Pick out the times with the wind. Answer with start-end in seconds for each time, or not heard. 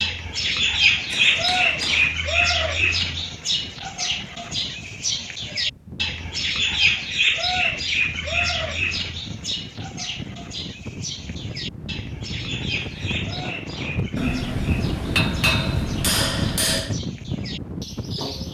0.0-18.4.